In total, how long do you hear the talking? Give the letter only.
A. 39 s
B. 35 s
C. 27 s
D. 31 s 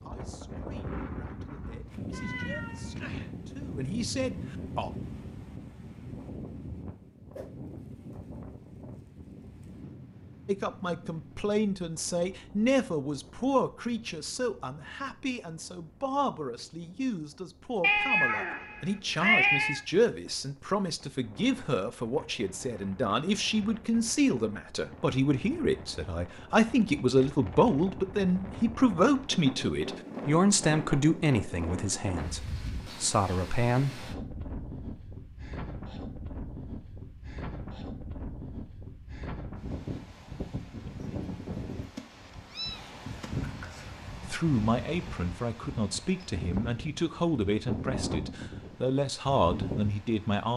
B.